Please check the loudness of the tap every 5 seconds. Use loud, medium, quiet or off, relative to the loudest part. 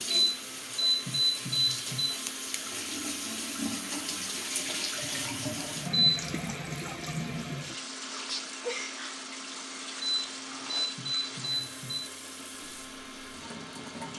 loud, loud, medium.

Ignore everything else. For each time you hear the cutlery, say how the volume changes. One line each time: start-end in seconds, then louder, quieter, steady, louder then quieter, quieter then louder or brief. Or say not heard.
not heard.